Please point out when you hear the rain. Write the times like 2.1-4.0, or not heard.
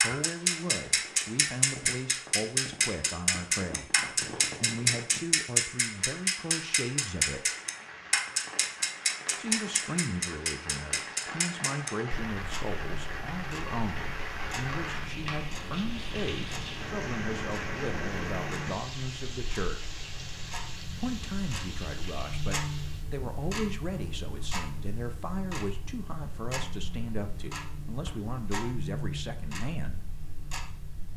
0.0-23.1.